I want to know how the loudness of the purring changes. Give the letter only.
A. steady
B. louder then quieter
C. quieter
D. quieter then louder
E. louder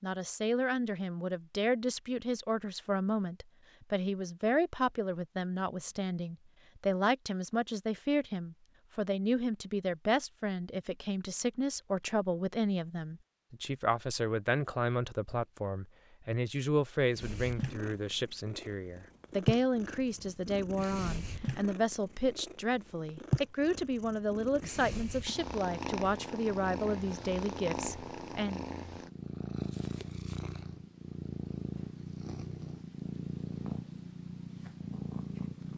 A.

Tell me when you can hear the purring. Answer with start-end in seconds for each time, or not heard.
17.1-35.7.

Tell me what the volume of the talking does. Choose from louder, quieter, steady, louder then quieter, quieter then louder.
steady.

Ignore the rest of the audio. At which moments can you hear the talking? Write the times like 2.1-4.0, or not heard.
0.0-28.6.